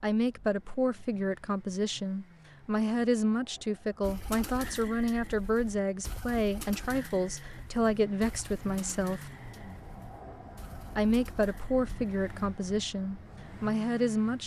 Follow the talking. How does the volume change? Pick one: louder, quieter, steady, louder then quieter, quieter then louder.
steady.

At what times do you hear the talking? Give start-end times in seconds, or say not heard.
0.0-9.3, 10.9-14.4.